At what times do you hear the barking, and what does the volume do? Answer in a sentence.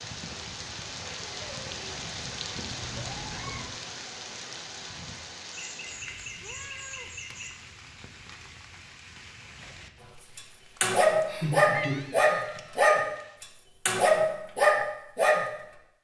You can hear the barking from 10.3 to 15.4 s, at a steady volume.